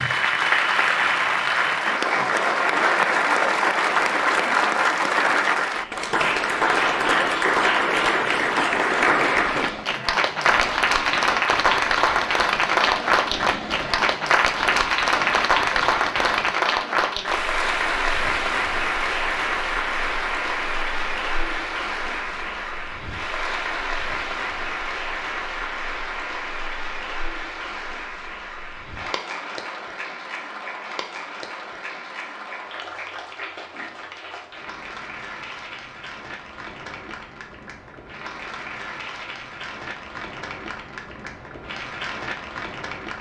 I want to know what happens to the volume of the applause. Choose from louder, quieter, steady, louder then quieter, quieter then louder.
quieter.